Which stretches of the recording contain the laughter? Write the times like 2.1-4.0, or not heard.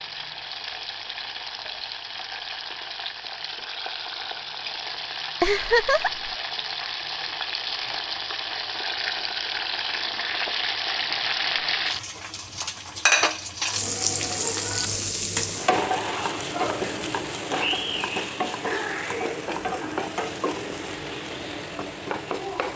5.4-6.3.